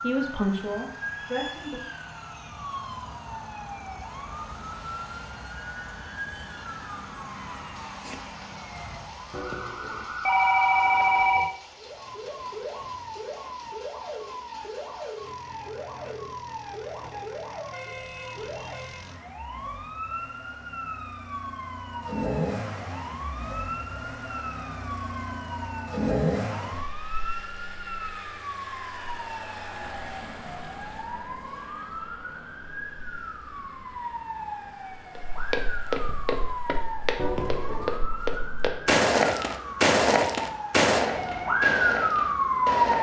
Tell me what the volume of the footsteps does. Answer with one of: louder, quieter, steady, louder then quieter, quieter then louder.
louder then quieter.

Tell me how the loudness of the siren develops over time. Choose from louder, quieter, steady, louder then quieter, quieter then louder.
louder.